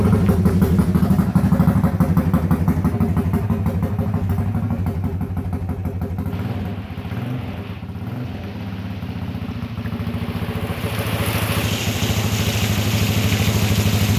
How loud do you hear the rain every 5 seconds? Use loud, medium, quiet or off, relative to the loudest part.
off, quiet, loud.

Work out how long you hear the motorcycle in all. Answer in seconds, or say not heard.
14 s.